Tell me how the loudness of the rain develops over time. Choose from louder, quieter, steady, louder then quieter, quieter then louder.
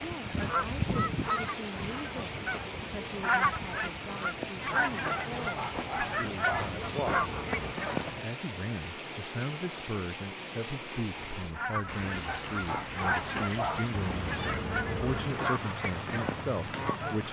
steady.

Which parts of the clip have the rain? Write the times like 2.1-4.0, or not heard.
0.0-17.2.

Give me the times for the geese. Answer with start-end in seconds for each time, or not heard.
0.0-8.2, 11.5-17.2.